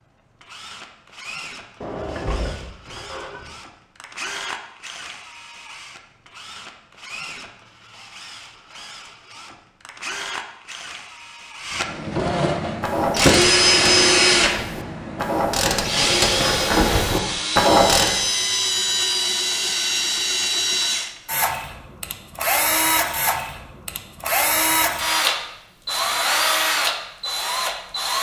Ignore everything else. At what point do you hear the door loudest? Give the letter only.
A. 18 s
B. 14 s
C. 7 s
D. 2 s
D.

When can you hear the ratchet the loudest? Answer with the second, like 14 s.
18 s.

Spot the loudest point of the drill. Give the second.
14 s.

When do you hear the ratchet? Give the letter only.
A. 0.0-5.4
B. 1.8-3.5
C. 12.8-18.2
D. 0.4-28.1
C.